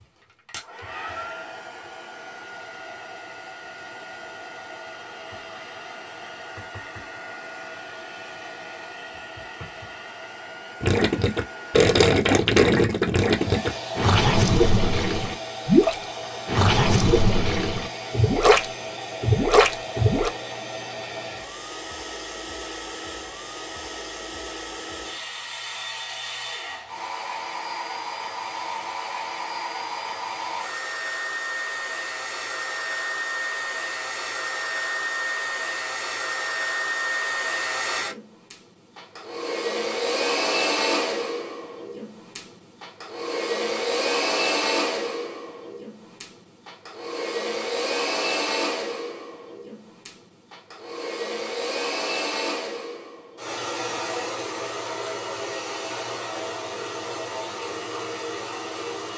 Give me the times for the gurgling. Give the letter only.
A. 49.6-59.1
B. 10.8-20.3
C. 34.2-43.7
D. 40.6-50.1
B.